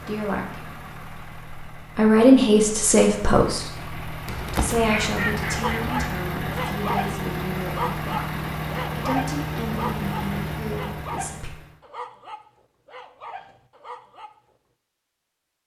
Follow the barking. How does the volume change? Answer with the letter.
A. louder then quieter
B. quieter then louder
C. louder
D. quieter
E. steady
D.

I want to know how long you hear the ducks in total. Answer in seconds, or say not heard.
2 s.